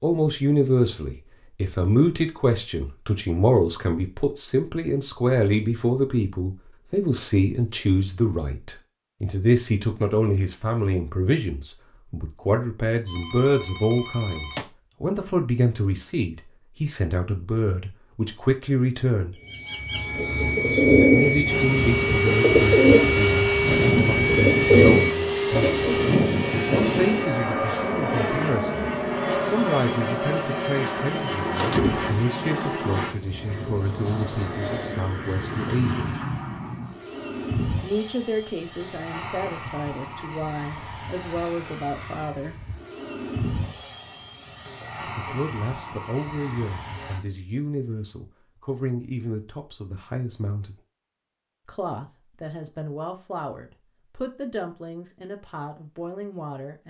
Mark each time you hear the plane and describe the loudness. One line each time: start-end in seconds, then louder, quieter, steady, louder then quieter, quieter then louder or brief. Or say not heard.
21.4-47.2 quieter.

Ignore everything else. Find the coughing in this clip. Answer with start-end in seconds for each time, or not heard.
not heard.